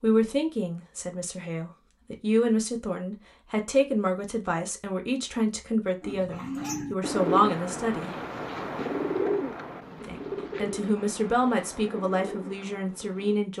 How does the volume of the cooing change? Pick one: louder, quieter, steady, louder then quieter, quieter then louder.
quieter.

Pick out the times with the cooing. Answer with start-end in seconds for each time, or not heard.
6.0-13.4.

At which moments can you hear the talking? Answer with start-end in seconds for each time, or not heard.
0.0-8.2, 10.1-13.5.